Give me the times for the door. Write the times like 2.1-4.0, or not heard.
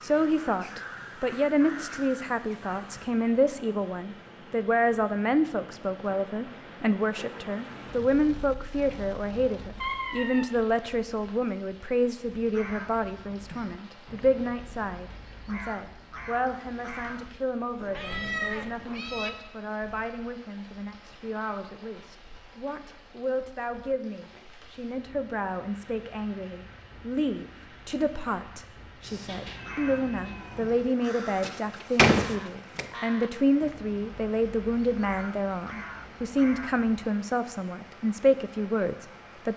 31.4-32.9.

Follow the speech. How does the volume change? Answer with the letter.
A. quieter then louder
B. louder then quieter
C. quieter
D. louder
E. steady
A.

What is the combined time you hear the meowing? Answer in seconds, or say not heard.
4 s.